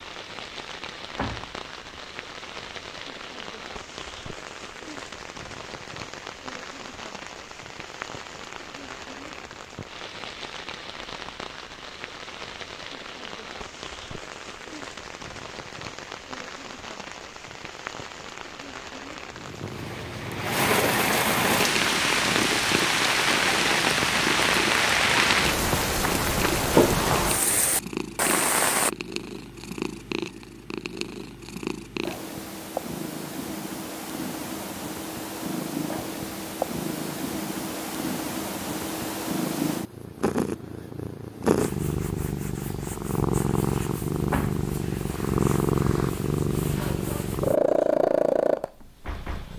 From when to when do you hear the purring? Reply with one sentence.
The purring can be heard from 19.3 to 49.5 s.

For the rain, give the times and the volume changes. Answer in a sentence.
The rain can be heard from 0.0 to 28.9 s, getting louder.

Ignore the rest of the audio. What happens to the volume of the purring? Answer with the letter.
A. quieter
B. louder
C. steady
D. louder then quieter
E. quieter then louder
B.